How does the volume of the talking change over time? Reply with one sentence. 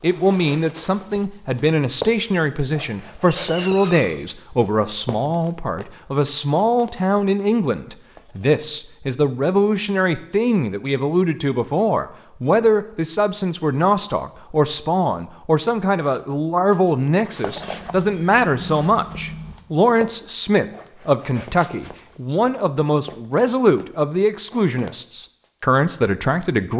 The volume of the talking stays about the same.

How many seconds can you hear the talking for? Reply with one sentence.
You can hear the talking for 27 seconds altogether.